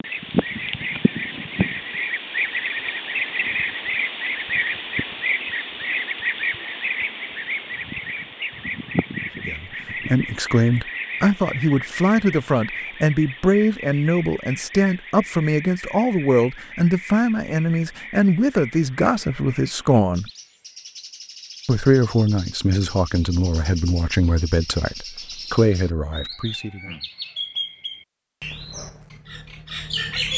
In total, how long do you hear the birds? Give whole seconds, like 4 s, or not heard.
30 s.